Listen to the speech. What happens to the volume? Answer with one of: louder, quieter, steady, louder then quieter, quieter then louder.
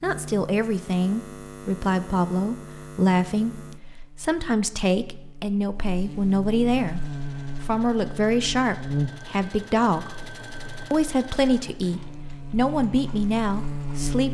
steady.